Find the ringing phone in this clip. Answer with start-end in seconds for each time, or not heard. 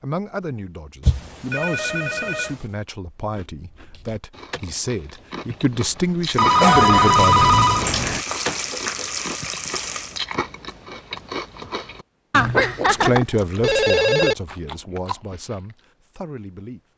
1.1-2.5, 6.3-8.2, 12.3-14.3.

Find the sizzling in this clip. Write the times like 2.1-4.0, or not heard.
6.3-10.2.